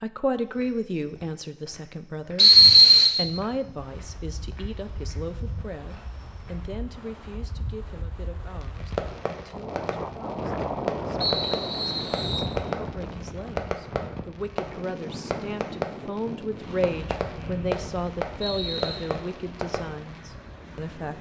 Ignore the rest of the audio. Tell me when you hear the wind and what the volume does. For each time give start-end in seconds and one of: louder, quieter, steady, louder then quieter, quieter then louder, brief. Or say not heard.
3.8-21.1 louder then quieter.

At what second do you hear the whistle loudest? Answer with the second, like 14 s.
3 s.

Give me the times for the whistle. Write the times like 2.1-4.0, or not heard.
2.4-3.1, 11.2-12.4, 17.4-19.0.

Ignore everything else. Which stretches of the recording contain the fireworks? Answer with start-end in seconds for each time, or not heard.
8.6-20.2.